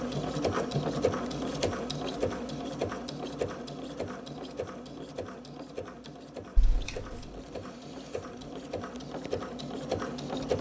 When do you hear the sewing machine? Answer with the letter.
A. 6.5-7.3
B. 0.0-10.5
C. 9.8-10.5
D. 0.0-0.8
B.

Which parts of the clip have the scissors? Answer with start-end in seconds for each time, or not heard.
6.5-7.3.